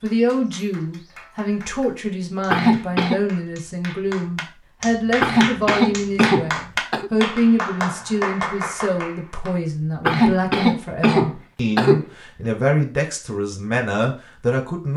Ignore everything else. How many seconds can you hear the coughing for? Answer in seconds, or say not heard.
5 s.